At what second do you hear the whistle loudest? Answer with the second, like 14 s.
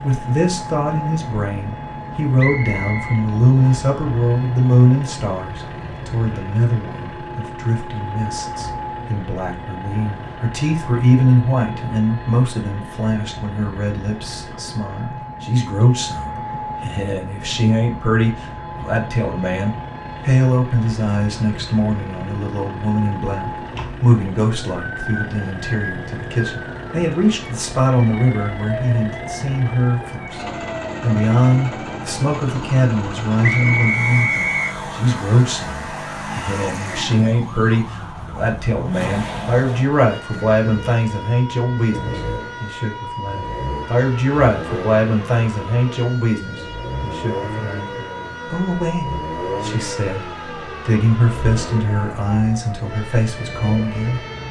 34 s.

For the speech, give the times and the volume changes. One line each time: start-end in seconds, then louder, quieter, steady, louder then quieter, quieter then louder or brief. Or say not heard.
0.0-54.2 steady.